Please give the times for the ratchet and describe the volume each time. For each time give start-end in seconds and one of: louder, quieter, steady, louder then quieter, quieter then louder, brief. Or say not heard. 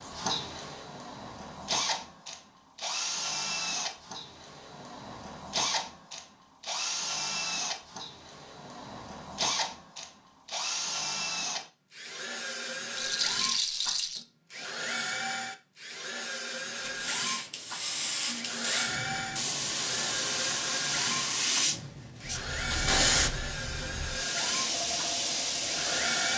not heard.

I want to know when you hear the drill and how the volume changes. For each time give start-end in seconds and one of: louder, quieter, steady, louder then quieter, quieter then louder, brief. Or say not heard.
0.0-26.3 steady.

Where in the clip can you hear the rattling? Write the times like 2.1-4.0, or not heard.
12.9-14.2.